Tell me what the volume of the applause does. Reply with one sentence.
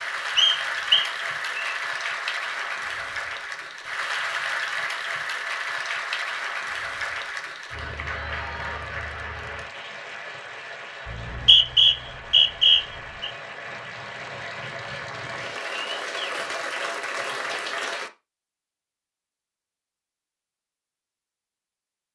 The volume of the applause goes down, then up.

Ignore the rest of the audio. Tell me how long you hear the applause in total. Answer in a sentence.
The applause can be heard for 18 seconds in total.